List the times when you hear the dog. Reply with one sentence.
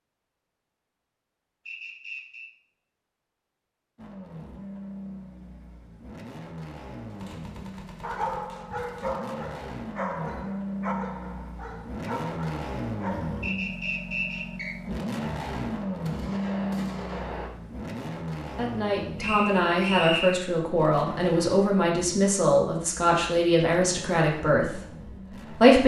You can hear the dog from 8.0 to 13.6 s.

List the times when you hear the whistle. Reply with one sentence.
You can hear the whistle from 1.6 to 2.5 s, from 13.4 to 14.8 s and from 19.1 to 20.4 s.